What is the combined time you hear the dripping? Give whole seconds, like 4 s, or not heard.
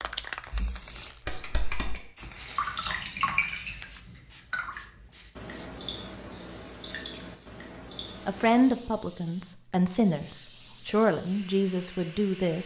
9 s.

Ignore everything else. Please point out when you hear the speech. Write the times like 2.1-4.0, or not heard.
8.2-12.6.